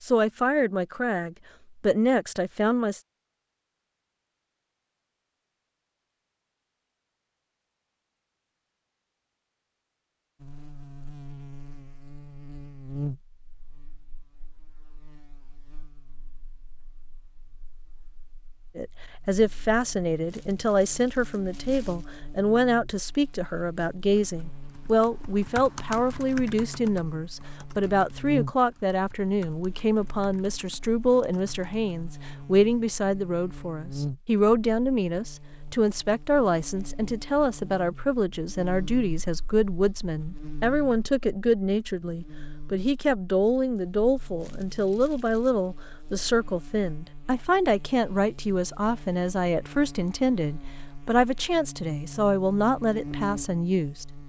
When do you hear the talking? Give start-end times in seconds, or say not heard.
0.0-3.0, 18.8-54.0.